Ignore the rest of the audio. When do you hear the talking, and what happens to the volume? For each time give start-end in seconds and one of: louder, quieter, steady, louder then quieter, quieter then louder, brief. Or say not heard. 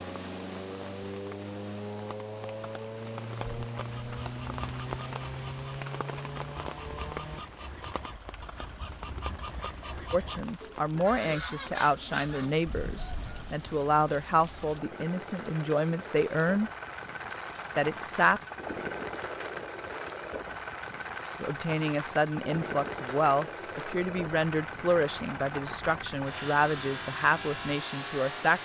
10.1-16.7 steady
17.8-18.4 brief
21.4-28.6 steady.